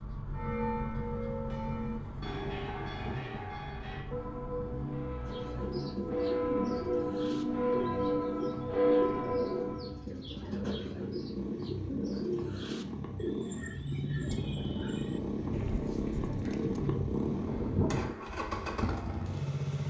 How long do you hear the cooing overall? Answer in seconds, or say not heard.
12 s.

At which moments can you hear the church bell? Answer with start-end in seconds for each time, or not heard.
0.3-10.0.